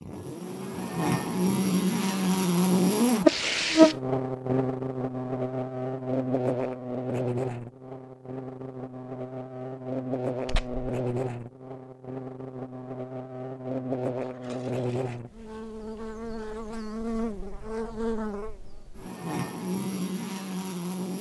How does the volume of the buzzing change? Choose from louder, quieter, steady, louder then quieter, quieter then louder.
quieter.